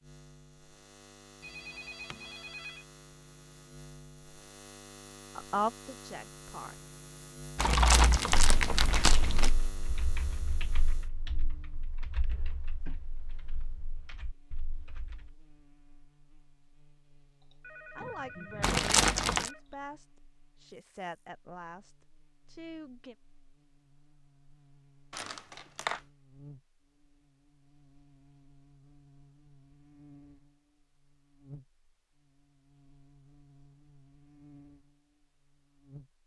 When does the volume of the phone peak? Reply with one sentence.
The volume of the phone peaks at 26 seconds.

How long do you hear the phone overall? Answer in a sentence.
You can hear the phone for 5 seconds altogether.